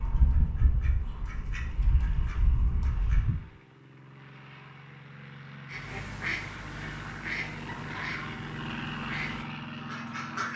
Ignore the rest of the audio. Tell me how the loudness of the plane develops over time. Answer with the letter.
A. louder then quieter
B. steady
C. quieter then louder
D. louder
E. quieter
D.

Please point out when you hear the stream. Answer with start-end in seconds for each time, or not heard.
not heard.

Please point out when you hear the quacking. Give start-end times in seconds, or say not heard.
0.0-3.5, 5.7-10.5.